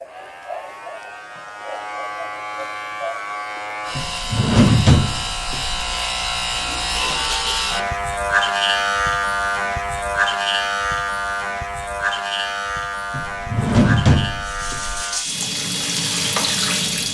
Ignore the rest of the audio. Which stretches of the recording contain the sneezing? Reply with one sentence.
The sneezing can't be heard in this clip.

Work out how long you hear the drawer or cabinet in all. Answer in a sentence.
You can hear the drawer or cabinet for 4 seconds altogether.